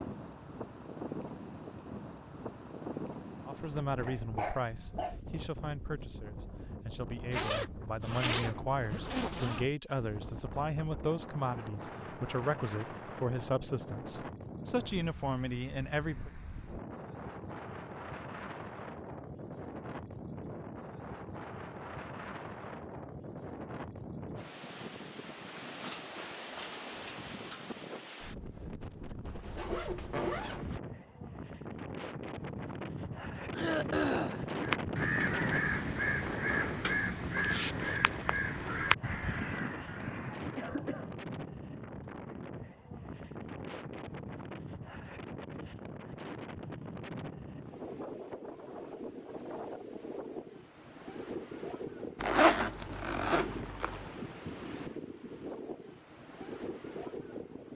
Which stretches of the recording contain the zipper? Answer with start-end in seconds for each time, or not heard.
7.3-9.7, 29.2-30.8, 52.2-54.0.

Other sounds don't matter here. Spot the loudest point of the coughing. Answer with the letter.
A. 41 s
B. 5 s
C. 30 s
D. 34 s
D.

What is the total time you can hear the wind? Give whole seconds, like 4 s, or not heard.
58 s.